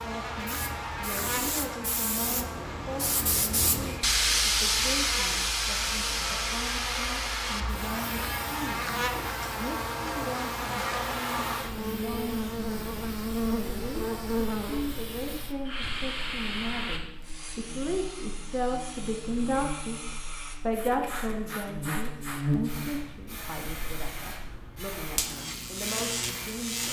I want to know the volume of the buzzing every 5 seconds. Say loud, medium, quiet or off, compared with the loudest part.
medium, loud, loud, quiet, loud, loud.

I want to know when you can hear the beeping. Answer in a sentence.
You can't hear the beeping here.